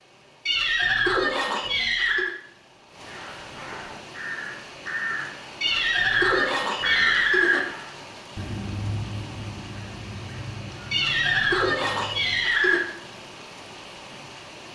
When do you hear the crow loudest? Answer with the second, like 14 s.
7 s.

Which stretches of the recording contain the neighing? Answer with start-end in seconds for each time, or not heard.
0.5-2.4, 5.6-7.6, 10.9-12.8.